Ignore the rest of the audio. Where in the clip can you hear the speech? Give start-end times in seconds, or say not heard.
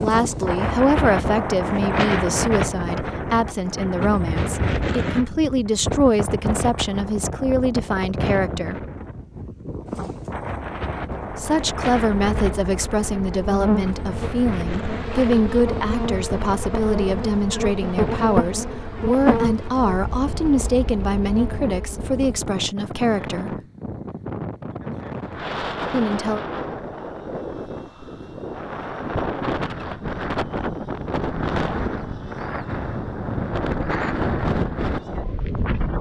0.0-8.8, 11.3-23.6, 25.9-26.4.